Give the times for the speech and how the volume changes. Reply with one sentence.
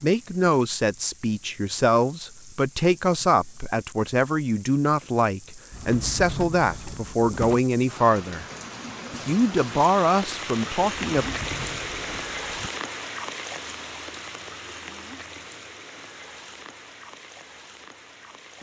The speech can be heard from 0.0 to 8.4 s, at a steady volume; and briefly from 9.1 to 11.2 s.